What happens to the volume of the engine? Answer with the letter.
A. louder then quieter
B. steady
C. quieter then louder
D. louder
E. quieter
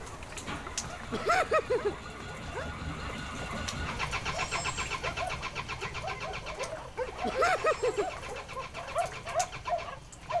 A.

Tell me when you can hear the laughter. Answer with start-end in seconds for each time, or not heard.
1.1-1.9, 7.2-8.1.